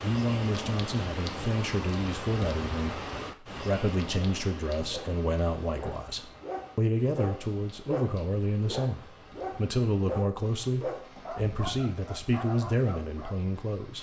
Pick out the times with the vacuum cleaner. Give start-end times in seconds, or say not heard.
not heard.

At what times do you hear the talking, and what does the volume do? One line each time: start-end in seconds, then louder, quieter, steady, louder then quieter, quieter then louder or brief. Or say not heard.
0.0-13.9 steady.